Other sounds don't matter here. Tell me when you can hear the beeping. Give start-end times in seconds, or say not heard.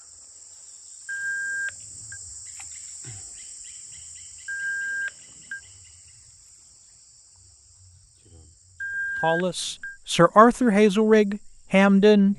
1.1-2.2, 4.5-5.6, 8.8-9.9.